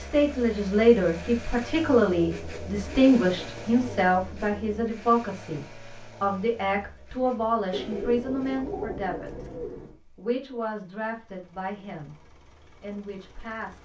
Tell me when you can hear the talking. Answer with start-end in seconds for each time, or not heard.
0.0-9.4, 10.2-12.2, 12.8-13.7.